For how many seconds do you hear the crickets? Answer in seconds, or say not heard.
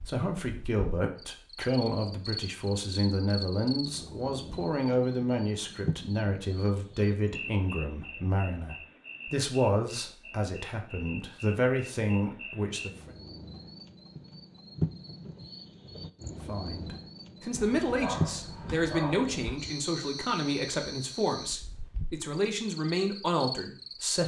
24 s.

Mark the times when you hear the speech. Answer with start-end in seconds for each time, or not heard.
0.1-13.1, 16.4-24.2.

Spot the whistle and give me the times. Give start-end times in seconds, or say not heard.
not heard.